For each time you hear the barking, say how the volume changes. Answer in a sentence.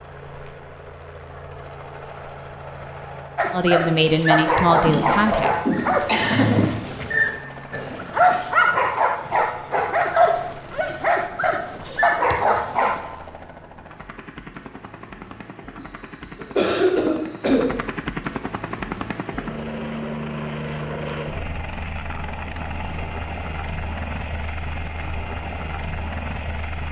You can hear the barking from 3.4 to 13.0 s, at a steady volume.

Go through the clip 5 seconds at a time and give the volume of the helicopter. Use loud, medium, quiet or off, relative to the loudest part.
medium, medium, medium, loud, loud, loud.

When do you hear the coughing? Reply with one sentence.
You can hear the coughing from 4.8 to 6.5 s and from 15.8 to 17.6 s.